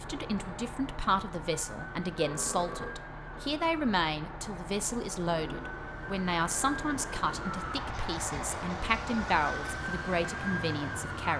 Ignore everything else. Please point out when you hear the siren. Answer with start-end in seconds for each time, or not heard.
0.0-11.3.